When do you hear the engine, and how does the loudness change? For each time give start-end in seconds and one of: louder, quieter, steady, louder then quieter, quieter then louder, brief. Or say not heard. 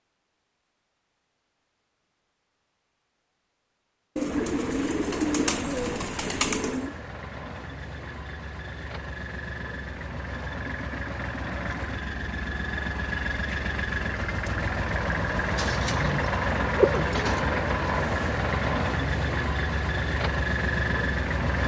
4.2-21.6 louder.